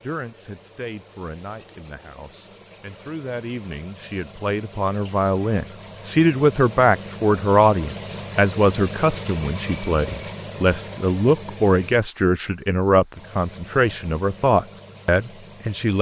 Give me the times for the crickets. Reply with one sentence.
You can hear the crickets from 0.0 to 15.9 s.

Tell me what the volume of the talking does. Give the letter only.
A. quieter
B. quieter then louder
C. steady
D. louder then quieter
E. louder
E.